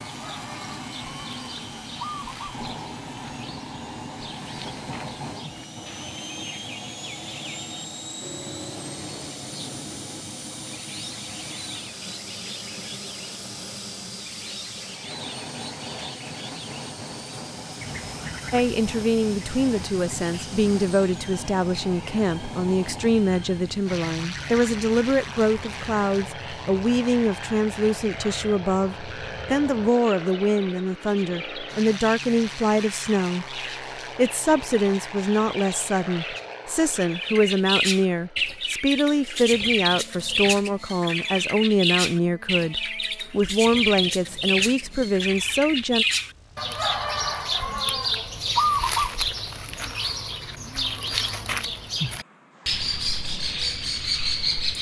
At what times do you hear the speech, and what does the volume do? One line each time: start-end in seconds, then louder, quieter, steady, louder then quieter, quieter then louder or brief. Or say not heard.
18.5-46.0 steady.